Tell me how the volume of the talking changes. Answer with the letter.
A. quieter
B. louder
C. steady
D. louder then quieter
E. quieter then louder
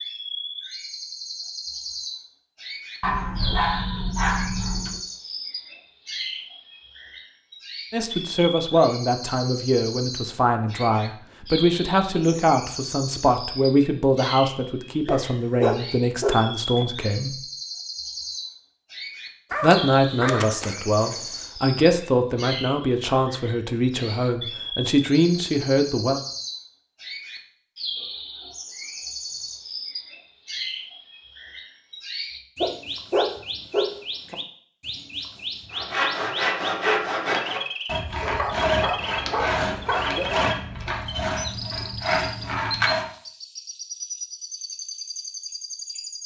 C.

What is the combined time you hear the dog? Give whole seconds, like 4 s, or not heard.
10 s.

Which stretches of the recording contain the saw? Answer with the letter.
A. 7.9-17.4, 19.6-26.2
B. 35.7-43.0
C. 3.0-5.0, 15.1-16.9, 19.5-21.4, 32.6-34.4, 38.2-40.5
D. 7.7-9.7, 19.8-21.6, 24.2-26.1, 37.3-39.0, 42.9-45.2
B.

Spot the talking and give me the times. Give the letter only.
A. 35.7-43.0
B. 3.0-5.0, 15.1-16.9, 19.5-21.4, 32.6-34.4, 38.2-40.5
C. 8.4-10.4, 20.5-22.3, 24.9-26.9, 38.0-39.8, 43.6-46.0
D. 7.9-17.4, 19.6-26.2
D.